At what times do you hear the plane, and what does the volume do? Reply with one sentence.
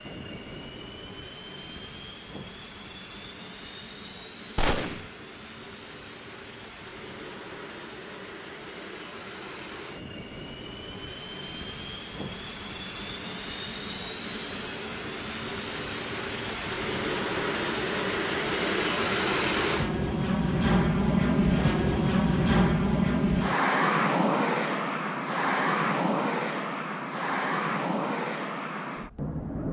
You can hear the plane from 0.0 to 29.6 s, getting louder.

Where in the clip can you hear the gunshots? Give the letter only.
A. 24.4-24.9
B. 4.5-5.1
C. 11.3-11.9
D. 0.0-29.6
B.